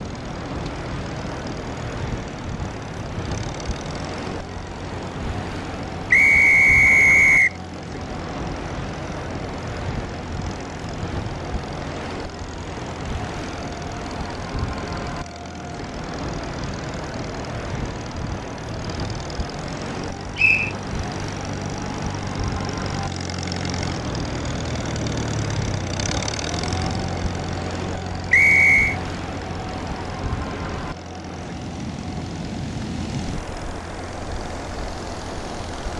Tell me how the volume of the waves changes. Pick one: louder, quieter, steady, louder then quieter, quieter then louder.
steady.